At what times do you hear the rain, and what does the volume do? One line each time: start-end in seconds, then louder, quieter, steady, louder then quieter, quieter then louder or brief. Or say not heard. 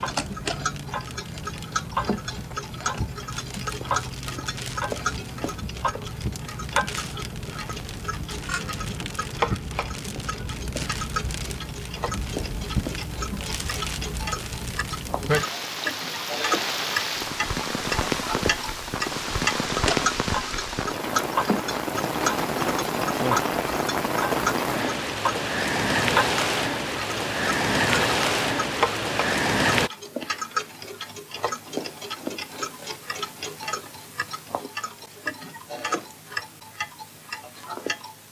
0.0-29.9 louder.